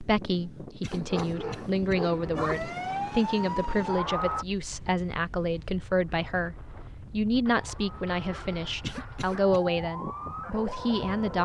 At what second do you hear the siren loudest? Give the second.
4 s.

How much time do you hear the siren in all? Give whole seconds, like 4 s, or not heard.
6 s.